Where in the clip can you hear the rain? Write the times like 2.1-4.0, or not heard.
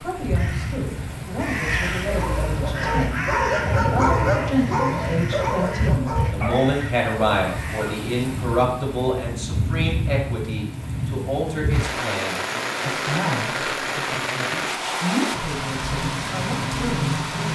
0.0-17.5.